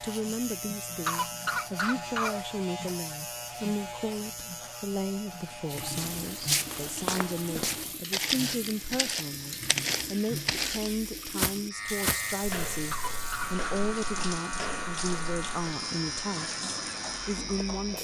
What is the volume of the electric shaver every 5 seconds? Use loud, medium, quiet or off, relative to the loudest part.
loud, medium, loud, loud.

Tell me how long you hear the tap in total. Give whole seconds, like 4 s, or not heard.
12 s.